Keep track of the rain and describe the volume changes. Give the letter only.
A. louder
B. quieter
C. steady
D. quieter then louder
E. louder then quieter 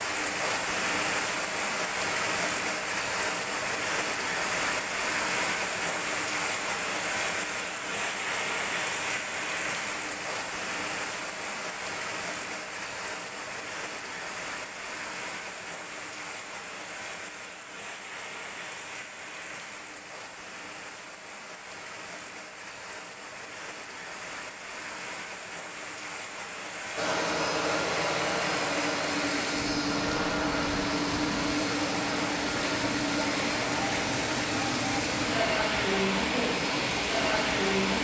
D.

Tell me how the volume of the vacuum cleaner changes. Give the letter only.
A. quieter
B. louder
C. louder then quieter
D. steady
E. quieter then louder
A.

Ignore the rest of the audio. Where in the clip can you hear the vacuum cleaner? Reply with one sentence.
The vacuum cleaner can be heard from 26.9 to 37.9 s.